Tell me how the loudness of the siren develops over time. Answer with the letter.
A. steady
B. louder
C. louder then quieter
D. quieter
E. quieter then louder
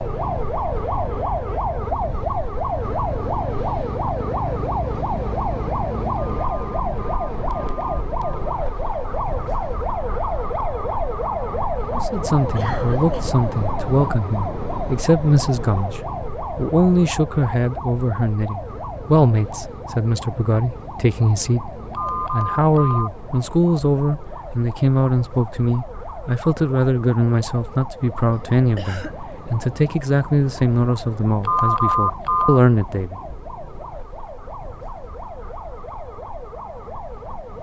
D.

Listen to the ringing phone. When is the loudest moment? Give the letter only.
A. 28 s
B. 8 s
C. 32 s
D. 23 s
C.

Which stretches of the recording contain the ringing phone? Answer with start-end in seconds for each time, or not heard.
6.2-8.4, 21.9-23.1, 31.4-32.6.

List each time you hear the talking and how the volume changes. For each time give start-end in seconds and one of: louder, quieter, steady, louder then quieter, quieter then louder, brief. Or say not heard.
11.9-33.2 steady.